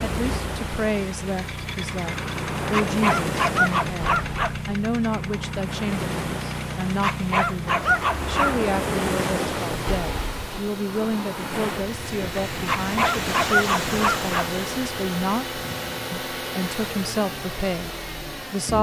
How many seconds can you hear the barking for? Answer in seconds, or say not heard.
5 s.